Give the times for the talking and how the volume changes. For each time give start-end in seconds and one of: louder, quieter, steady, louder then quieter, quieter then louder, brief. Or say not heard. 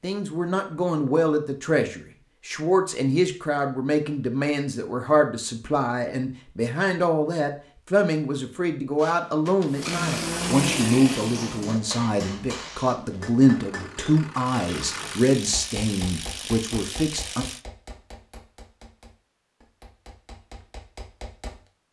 0.0-17.4 steady.